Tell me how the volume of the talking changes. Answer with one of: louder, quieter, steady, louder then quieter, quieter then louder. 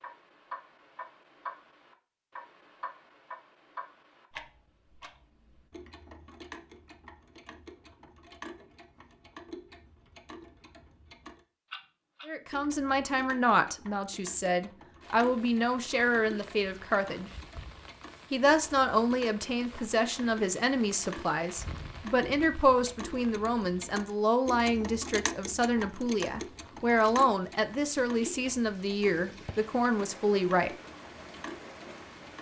steady.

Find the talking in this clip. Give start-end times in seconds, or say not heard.
12.2-17.3, 18.3-30.8.